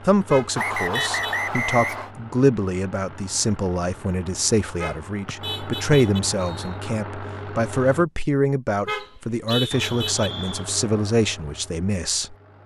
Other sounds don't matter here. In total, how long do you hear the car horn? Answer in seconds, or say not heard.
4 s.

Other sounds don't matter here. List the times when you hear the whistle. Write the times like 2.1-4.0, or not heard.
0.6-2.1, 5.2-6.8, 8.8-10.7.